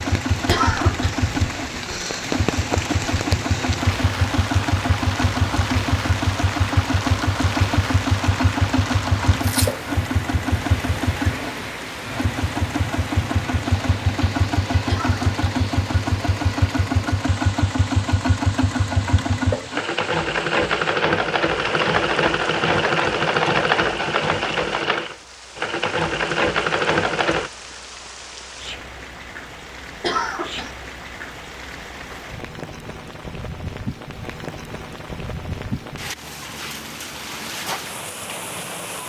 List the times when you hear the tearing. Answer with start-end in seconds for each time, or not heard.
9.4-9.8.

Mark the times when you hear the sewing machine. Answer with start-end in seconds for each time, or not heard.
0.0-27.5.